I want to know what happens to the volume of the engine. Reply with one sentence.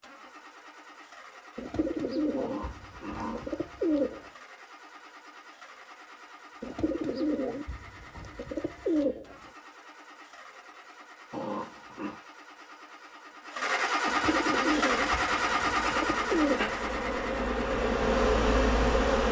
The volume of the engine goes up.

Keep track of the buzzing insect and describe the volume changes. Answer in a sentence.
The loudness of the buzzing insect goes up.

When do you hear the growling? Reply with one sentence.
You can hear the growling from 2.4 to 3.5 s and from 11.3 to 12.2 s.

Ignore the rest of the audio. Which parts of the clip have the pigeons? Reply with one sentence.
You can hear the pigeons from 1.6 to 4.3 s, from 6.6 to 9.3 s and from 14.1 to 16.7 s.